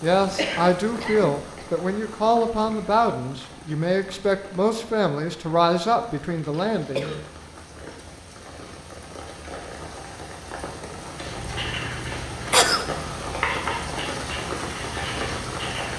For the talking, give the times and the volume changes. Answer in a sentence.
You can hear the talking from 0.0 to 7.2 s, at a steady volume.